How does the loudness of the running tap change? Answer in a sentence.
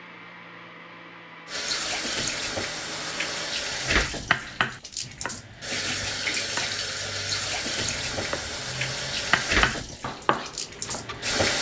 The volume of the running tap stays about the same.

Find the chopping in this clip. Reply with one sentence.
The chopping can be heard from 3.8 to 11.5 s.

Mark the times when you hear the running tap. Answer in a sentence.
The running tap can be heard from 1.4 to 11.5 s.